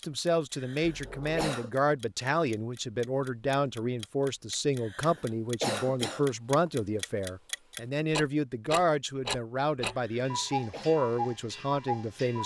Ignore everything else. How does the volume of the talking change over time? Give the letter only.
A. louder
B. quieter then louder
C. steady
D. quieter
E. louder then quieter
C.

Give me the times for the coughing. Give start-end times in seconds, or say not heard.
0.6-1.7, 4.8-6.2, 9.9-10.9.